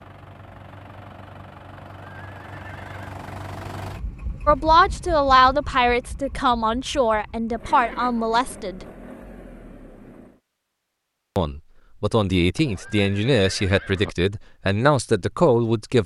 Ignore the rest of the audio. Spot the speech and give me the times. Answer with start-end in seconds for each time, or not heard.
4.5-8.8, 11.3-16.0.